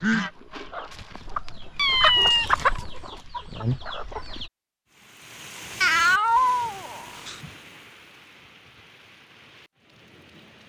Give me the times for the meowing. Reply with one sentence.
You can hear the meowing from 1.8 to 2.5 s and from 5.8 to 7.3 s.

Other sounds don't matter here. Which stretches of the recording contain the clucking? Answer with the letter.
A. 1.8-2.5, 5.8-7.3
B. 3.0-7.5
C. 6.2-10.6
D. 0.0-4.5
D.